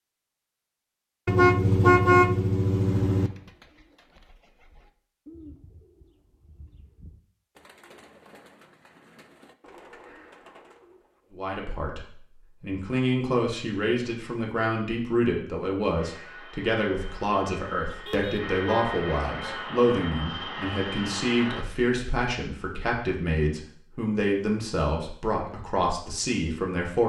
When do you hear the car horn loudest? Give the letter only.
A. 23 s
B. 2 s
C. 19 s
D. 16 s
B.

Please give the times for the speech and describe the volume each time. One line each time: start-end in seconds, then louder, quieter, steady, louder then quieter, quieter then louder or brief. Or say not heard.
11.3-27.0 steady.